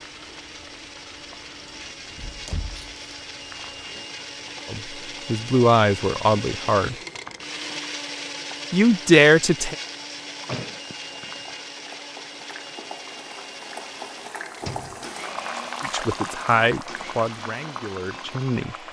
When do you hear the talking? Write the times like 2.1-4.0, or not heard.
4.7-7.0, 8.7-9.8, 15.8-18.8.